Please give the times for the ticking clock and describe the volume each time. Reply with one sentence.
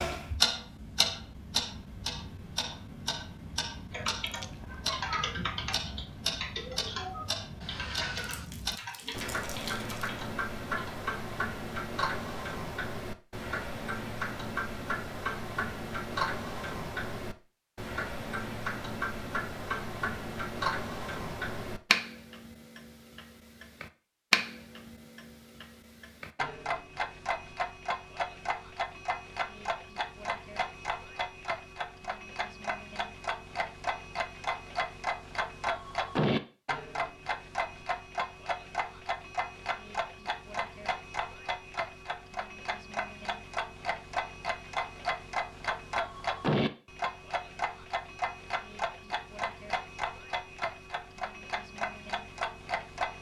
The ticking clock can be heard from 0.0 to 53.1 s, at a steady volume.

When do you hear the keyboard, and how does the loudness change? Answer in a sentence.
You can hear the keyboard from 3.9 to 10.9 s, getting quieter.